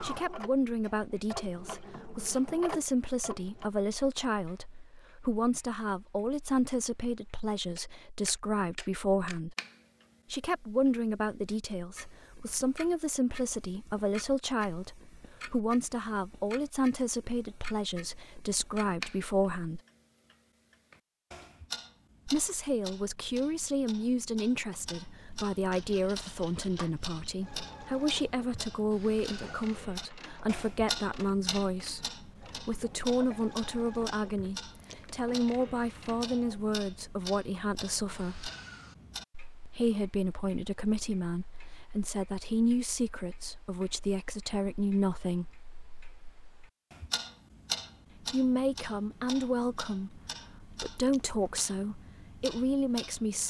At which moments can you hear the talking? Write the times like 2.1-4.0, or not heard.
0.0-9.6, 10.3-19.8, 22.2-38.5, 39.6-45.5, 48.1-53.4.